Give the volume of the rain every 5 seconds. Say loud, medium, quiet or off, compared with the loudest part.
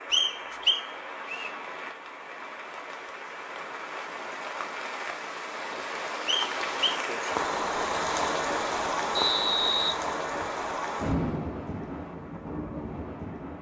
medium, loud, loud.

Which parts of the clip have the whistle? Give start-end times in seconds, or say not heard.
0.1-1.5, 6.2-7.0, 9.2-10.7.